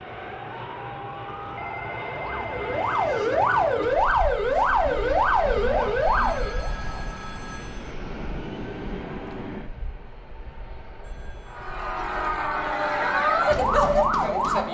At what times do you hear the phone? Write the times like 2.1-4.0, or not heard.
1.6-3.3, 6.0-8.0, 11.0-11.7.